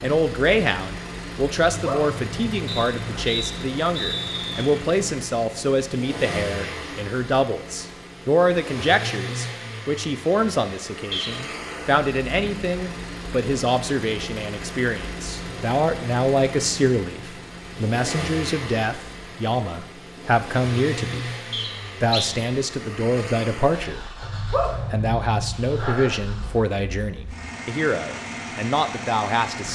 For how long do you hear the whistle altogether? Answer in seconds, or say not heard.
3 s.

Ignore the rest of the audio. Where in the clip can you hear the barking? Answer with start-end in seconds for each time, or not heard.
1.6-3.2, 24.2-26.2.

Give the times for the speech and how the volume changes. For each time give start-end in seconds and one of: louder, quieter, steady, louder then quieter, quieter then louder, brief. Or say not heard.
0.0-21.3 steady
22.0-24.0 brief
24.9-29.6 quieter then louder.